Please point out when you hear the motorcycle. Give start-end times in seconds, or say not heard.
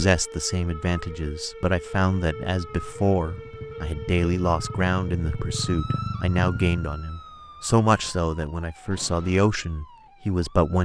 2.6-7.0.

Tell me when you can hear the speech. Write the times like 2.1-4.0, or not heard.
0.0-10.7.